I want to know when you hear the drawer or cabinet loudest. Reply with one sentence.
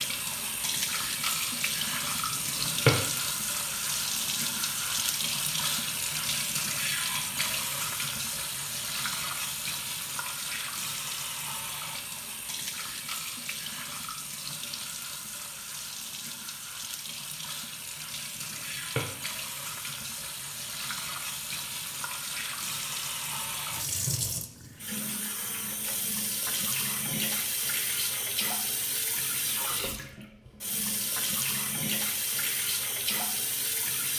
The volume of the drawer or cabinet peaks at 3 seconds.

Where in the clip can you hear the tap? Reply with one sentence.
The tap can be heard from 0.0 to 34.1 s.